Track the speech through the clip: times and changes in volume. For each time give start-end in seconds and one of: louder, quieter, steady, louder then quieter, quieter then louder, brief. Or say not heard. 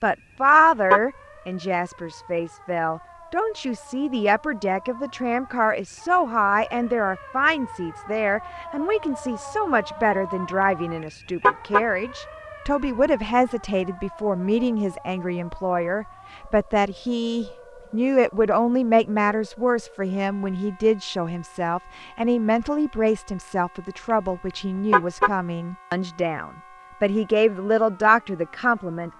0.0-29.1 steady.